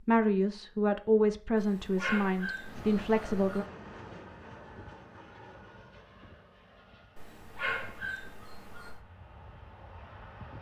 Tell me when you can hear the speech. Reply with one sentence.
You can hear the speech from 0.1 to 3.6 s.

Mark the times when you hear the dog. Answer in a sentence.
The dog can be heard from 1.6 to 3.6 s and from 7.2 to 9.0 s.